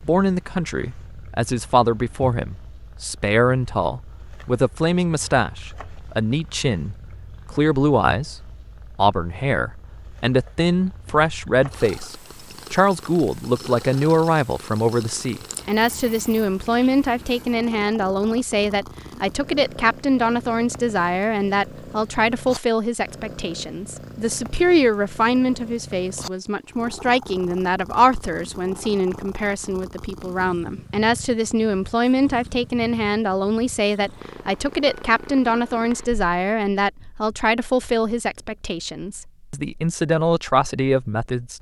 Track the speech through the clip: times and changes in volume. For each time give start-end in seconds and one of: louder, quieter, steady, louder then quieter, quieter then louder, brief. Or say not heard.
0.0-41.5 steady.